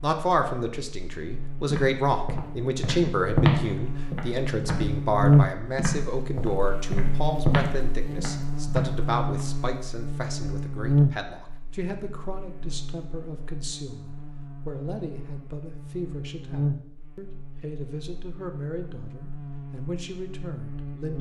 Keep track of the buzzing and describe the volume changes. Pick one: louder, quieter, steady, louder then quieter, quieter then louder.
louder then quieter.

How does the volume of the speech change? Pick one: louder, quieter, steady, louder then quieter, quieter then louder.
quieter.